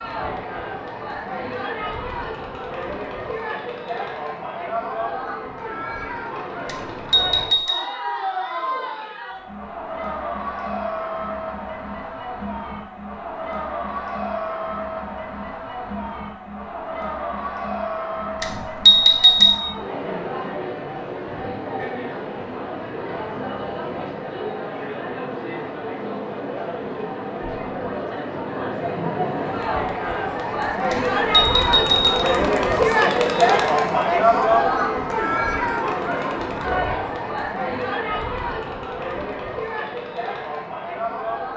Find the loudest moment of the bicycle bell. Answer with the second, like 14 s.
19 s.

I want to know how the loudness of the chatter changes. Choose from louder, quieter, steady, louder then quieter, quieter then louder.
louder.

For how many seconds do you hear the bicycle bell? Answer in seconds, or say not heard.
4 s.